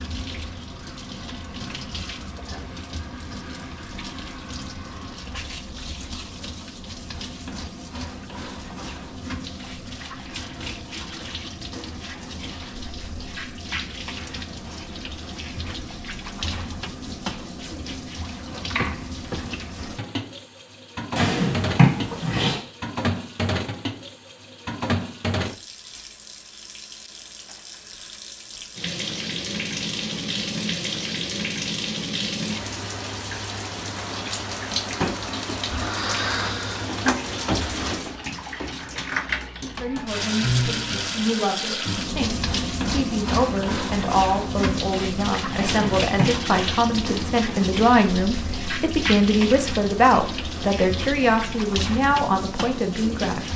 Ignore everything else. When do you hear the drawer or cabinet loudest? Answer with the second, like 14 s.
22 s.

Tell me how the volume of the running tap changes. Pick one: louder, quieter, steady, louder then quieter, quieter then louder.
louder.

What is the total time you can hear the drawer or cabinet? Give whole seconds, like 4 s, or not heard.
2 s.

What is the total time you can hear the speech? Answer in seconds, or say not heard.
14 s.